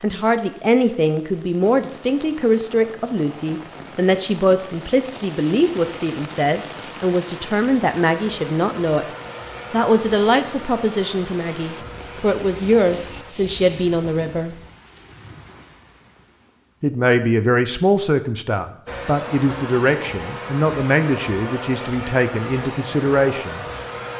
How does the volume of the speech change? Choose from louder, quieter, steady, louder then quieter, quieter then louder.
steady.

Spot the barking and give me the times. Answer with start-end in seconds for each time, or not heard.
not heard.